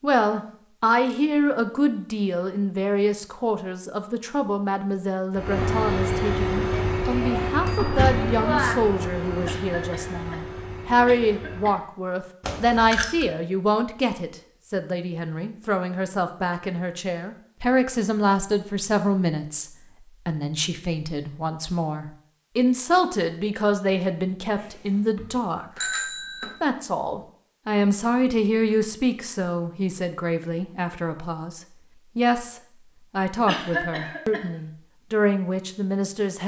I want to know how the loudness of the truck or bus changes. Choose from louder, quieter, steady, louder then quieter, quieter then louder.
quieter.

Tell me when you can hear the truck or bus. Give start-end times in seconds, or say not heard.
5.3-11.8.